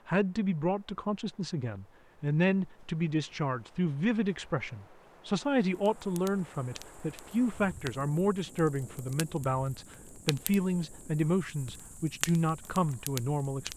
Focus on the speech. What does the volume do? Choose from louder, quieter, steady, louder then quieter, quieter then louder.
steady.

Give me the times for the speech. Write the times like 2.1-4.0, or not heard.
0.1-13.7.